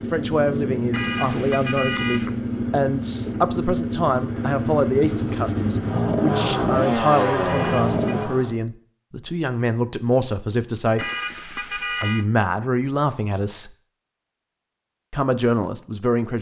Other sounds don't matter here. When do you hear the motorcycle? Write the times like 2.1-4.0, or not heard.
0.0-8.6.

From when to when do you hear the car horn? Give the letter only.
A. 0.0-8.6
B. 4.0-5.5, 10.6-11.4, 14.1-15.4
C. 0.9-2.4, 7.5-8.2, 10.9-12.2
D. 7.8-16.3
C.